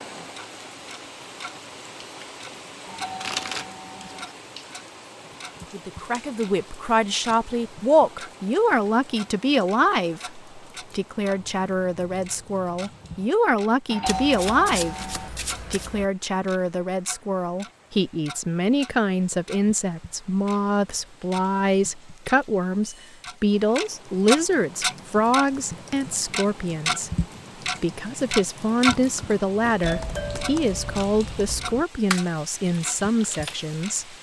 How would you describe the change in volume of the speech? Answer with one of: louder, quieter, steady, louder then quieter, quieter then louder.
steady.